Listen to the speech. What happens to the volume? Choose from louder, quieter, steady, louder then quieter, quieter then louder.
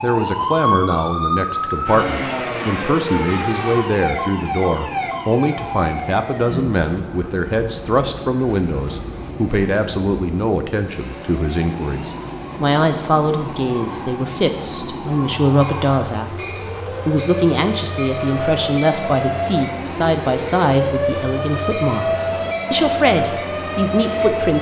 steady.